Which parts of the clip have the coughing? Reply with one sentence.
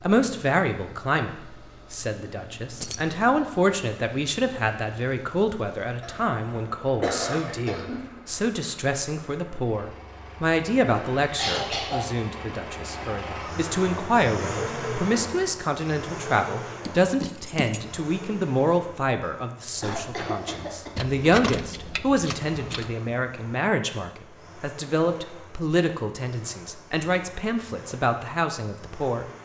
The coughing can be heard from 6.0 to 8.0 s, from 10.8 to 12.1 s and from 19.8 to 21.1 s.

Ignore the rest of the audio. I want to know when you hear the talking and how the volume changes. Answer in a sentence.
The talking can be heard briefly from 0.0 to 1.3 s; and from 1.9 to 29.2 s, at a steady volume.